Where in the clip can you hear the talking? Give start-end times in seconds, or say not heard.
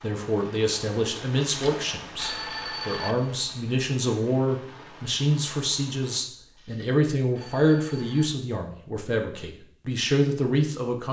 0.0-11.0.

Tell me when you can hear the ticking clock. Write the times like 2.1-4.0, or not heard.
not heard.